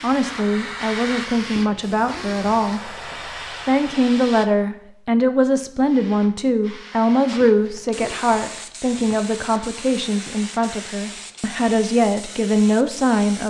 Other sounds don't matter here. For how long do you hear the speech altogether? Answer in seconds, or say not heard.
13 s.